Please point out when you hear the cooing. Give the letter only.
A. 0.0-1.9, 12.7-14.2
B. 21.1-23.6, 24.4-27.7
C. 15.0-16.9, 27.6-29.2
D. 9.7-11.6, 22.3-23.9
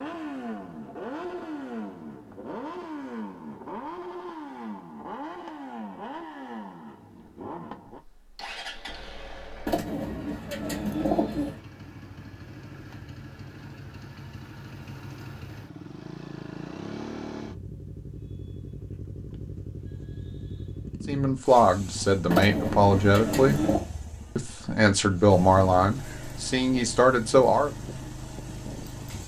D.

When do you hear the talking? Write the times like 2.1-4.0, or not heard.
21.1-23.6, 24.4-27.7.